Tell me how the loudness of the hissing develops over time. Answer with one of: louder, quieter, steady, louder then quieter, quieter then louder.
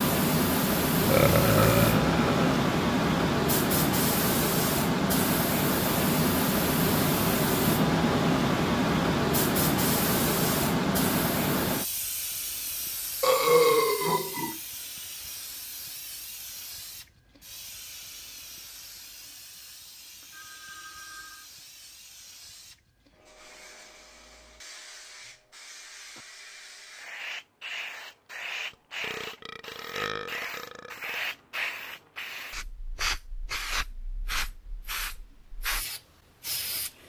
quieter then louder.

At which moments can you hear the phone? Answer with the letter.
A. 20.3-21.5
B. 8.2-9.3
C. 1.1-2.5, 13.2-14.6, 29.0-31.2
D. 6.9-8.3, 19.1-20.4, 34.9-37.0
A.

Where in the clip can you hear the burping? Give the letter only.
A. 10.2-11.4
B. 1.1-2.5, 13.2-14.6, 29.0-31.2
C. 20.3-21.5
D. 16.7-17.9
B.